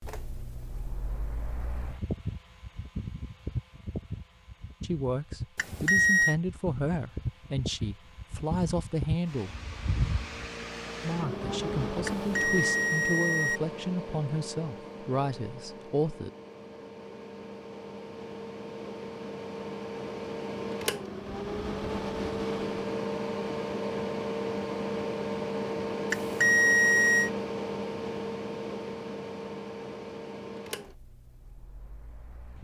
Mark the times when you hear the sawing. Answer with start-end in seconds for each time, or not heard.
not heard.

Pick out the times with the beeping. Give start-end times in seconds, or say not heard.
5.5-6.3, 12.1-13.6, 26.1-27.3.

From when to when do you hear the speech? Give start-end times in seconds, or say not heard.
4.8-9.5, 11.0-16.3.